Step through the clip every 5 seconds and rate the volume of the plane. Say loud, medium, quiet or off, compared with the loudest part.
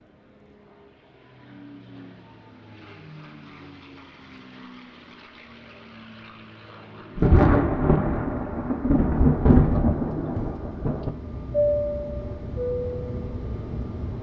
quiet, quiet, loud.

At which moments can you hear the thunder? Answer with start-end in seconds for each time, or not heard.
7.2-11.1.